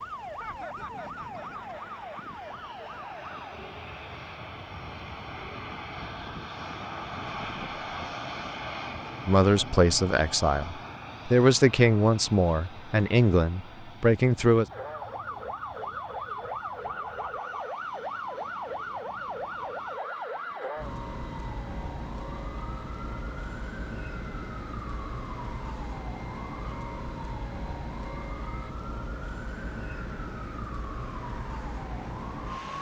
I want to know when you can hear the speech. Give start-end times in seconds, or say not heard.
9.2-14.7.